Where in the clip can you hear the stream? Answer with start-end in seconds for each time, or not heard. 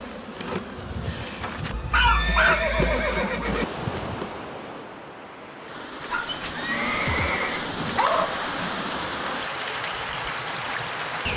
3.4-11.3.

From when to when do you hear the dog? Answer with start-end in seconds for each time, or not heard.
1.4-2.8, 6.1-8.9.